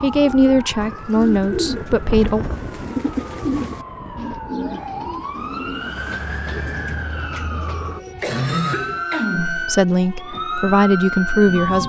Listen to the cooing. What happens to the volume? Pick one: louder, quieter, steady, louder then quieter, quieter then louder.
quieter.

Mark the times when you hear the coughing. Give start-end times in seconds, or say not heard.
8.2-9.7.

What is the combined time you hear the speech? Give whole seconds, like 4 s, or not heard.
5 s.